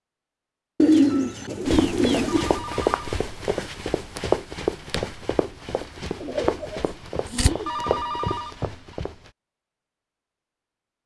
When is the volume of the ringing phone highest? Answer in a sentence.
The loudest moment of the ringing phone is at 8 seconds.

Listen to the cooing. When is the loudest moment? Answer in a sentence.
The loudest moment of the cooing is at 1 second.